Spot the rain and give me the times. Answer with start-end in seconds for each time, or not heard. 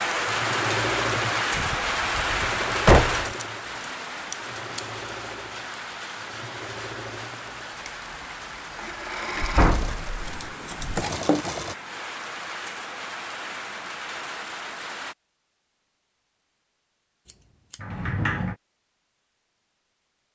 0.0-15.2.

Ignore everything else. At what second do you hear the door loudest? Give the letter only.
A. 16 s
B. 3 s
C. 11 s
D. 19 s
B.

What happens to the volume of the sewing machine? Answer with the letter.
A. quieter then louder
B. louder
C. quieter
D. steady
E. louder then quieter
A.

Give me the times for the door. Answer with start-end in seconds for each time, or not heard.
1.6-3.2, 9.3-11.1, 17.8-18.6.